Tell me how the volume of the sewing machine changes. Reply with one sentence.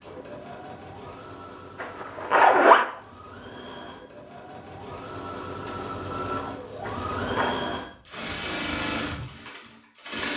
The loudness of the sewing machine goes up.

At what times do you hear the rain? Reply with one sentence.
The rain can't be heard in this clip.